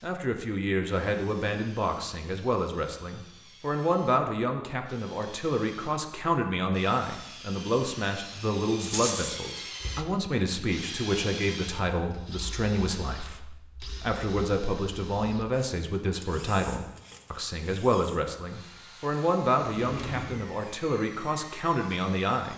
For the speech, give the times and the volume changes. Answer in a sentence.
The speech can be heard from 0.0 to 22.5 s, at a steady volume.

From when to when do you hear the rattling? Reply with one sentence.
The rattling can be heard from 8.8 to 9.3 s.